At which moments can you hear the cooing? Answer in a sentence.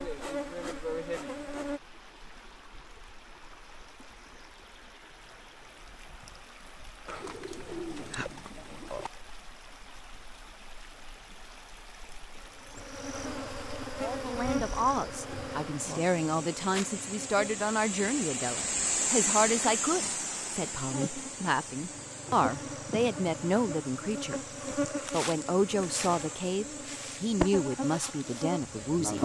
You can hear the cooing from 7.0 to 9.1 s.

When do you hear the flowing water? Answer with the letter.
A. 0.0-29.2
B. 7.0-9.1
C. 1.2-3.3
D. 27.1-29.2
A.